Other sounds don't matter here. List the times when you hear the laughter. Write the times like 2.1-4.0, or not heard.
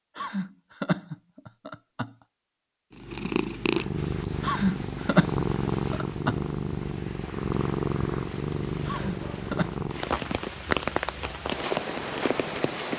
0.1-2.1, 4.4-6.4, 8.8-9.8.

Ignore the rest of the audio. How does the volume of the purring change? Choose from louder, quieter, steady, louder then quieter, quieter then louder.
quieter.